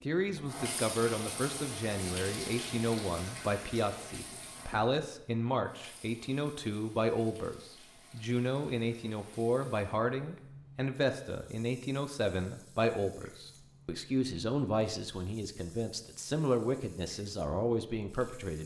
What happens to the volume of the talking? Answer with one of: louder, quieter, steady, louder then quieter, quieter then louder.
steady.